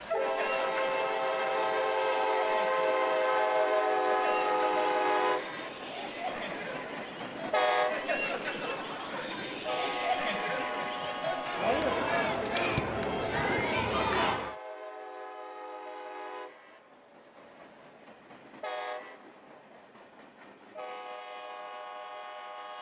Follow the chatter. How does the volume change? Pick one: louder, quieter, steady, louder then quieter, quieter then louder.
louder.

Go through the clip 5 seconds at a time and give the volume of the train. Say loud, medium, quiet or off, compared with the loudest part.
loud, medium, medium, quiet, quiet.